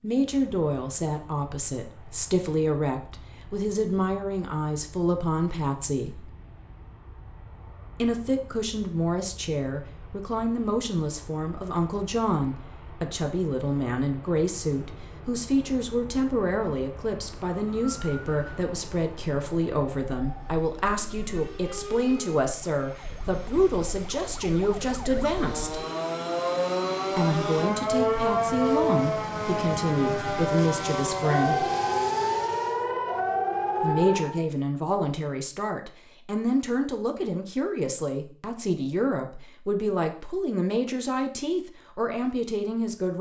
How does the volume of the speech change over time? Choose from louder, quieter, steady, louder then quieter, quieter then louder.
steady.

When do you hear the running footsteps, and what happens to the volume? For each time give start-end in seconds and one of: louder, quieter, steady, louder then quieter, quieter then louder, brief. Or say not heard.
not heard.